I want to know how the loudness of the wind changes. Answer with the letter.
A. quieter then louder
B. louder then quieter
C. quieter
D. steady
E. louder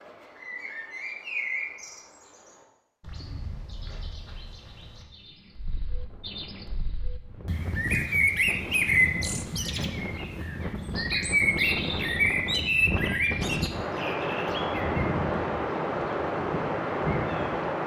E.